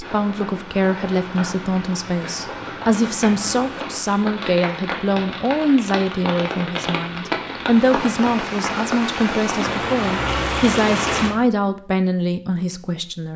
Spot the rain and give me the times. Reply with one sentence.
The rain can be heard from 0.0 to 11.3 s.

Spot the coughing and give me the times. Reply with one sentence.
You can't hear the coughing here.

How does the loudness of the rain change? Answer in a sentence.
The volume of the rain goes up.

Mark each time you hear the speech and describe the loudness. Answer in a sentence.
The speech can be heard from 0.0 to 13.3 s, at a steady volume.